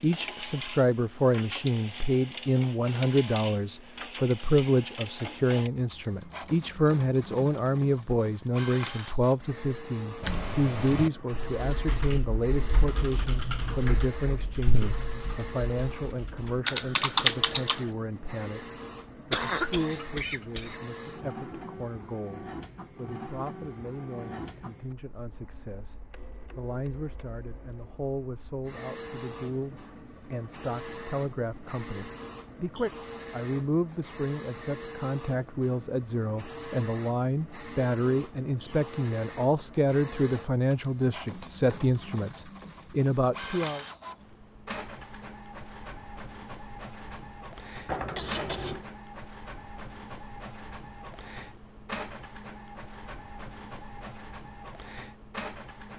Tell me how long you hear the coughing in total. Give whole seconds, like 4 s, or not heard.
2 s.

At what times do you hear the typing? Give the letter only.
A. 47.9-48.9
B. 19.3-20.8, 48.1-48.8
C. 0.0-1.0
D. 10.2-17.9
D.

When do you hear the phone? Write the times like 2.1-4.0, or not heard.
47.9-48.9.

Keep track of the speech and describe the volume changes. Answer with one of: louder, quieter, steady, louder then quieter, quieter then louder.
quieter then louder.